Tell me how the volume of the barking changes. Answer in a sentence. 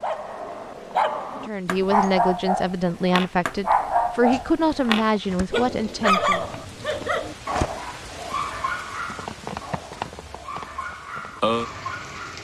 The volume of the barking goes down.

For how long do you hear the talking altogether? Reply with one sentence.
You can hear the talking for 5 seconds altogether.